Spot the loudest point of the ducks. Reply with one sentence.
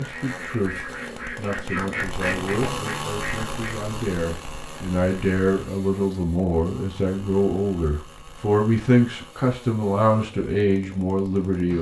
The volume of the ducks peaks at 2 seconds.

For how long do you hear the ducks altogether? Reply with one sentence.
You can hear the ducks for 4 seconds altogether.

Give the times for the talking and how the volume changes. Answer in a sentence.
You can hear the talking from 0.0 to 11.7 s, getting louder.